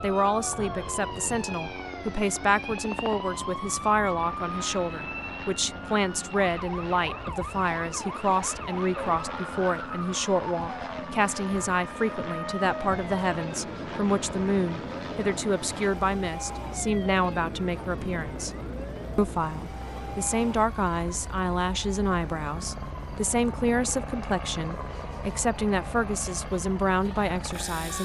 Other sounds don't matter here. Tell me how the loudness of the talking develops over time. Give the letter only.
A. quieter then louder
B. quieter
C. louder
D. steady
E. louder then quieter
D.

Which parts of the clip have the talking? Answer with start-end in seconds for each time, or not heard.
0.0-18.5, 19.1-27.9.